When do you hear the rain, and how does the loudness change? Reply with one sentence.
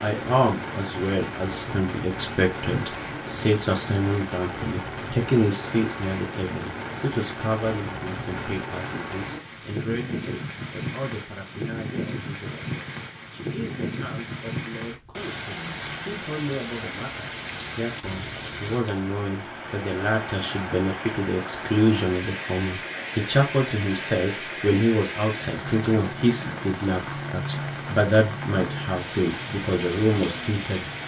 The rain can be heard from 0.0 to 31.0 s, at a steady volume.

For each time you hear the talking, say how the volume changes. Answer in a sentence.
You can hear the talking from 0.0 to 30.9 s, getting quieter then louder.